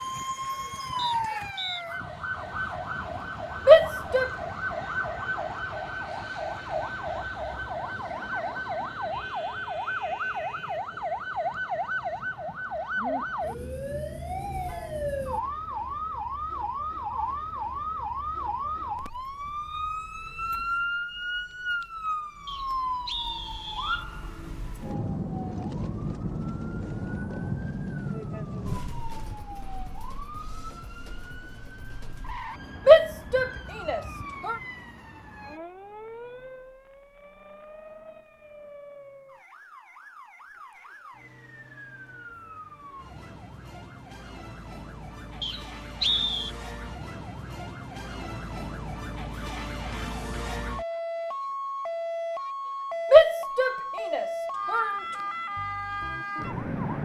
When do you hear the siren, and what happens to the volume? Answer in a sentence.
You can hear the siren from 0.0 to 57.0 s, getting quieter then louder.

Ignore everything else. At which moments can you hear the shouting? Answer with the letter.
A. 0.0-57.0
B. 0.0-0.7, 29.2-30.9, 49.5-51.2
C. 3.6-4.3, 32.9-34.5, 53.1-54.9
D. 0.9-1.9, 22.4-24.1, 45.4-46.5
C.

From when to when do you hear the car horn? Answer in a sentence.
You can't hear the car horn here.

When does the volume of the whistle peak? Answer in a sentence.
The loudest moment of the whistle is at 46 seconds.